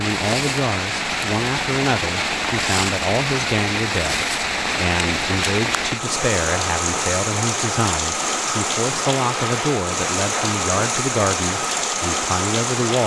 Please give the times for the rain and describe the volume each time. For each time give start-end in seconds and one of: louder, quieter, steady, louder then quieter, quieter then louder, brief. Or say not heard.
0.0-13.0 steady.